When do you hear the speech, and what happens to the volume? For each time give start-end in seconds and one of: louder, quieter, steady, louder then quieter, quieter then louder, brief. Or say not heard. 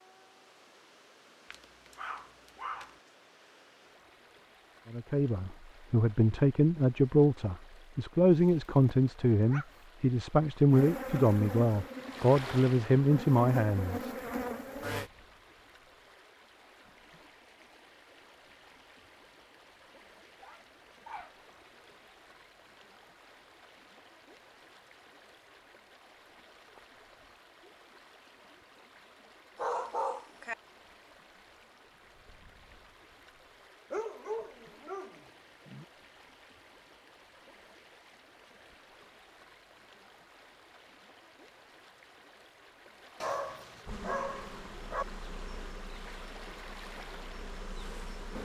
4.9-14.2 steady.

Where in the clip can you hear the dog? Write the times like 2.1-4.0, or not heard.
1.5-3.0, 8.4-9.7, 20.4-21.4, 29.6-30.6, 33.9-35.9, 43.2-45.0.